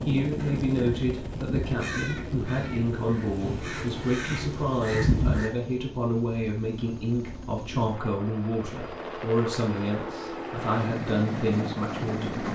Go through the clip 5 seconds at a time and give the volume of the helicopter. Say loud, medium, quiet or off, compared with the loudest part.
loud, medium, loud.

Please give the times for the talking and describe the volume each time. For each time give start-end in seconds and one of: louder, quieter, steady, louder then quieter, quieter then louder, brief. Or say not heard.
0.1-12.4 steady.